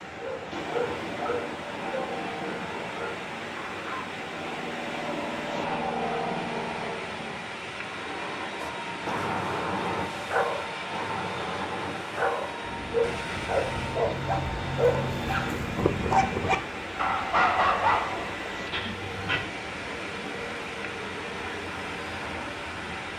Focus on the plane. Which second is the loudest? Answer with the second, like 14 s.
6 s.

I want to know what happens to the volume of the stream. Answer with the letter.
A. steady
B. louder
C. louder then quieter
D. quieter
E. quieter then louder
A.